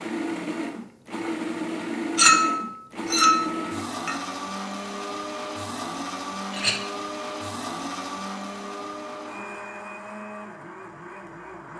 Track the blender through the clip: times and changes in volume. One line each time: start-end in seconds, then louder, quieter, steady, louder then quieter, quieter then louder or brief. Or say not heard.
0.0-11.7 quieter.